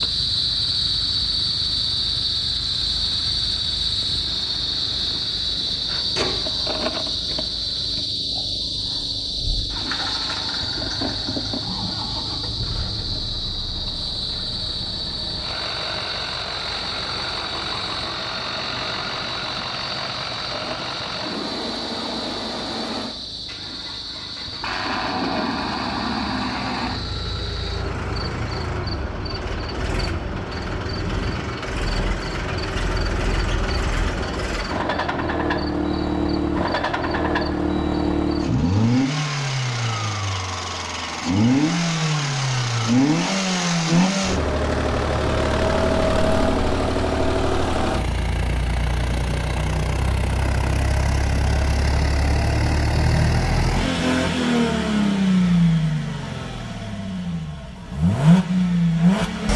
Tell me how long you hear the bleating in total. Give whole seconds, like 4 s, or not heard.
not heard.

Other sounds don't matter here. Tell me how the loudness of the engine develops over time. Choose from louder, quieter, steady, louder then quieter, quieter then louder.
louder.